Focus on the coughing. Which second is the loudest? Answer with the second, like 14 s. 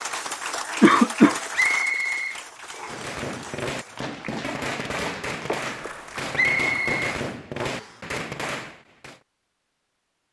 1 s.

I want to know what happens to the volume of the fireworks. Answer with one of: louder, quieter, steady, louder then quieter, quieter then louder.
steady.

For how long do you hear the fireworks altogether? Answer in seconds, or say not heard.
6 s.